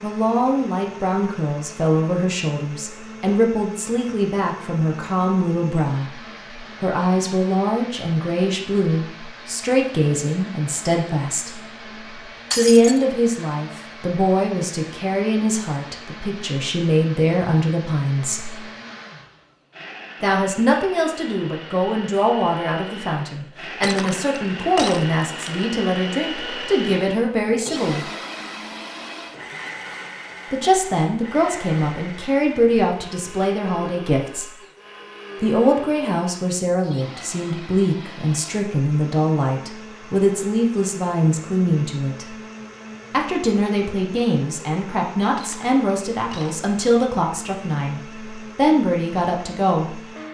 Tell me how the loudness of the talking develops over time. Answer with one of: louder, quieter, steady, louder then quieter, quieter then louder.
steady.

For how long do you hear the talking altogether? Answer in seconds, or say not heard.
43 s.